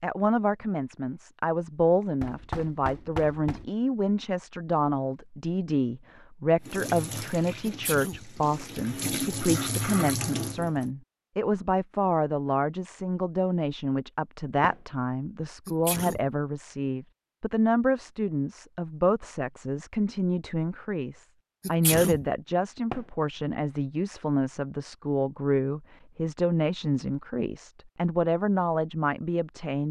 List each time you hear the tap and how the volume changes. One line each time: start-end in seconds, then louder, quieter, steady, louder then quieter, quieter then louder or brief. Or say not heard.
6.6-10.9 quieter then louder.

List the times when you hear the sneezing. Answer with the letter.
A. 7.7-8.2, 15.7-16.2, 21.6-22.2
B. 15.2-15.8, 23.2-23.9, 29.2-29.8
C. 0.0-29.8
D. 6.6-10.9
A.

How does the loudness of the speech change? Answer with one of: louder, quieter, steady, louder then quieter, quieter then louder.
steady.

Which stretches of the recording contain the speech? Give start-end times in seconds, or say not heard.
0.0-29.8.